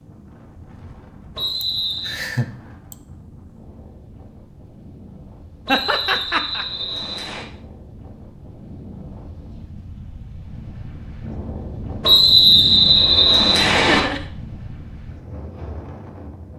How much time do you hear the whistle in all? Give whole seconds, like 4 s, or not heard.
5 s.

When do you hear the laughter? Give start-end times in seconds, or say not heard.
1.6-3.0, 5.7-6.7, 13.6-14.2.